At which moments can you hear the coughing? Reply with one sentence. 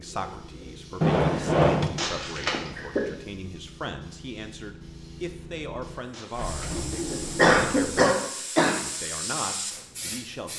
You can hear the coughing from 1.9 to 3.0 s and from 6.2 to 8.8 s.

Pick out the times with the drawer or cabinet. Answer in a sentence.
The drawer or cabinet can be heard from 1.0 to 1.9 s and from 6.3 to 8.1 s.